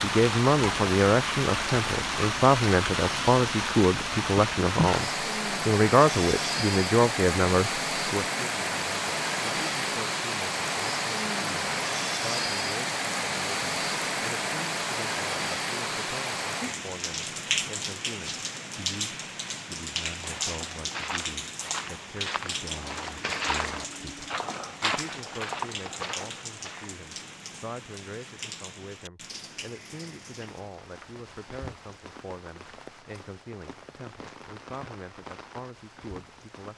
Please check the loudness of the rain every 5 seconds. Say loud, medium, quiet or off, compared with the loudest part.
loud, loud, loud, loud, medium, quiet, quiet, quiet.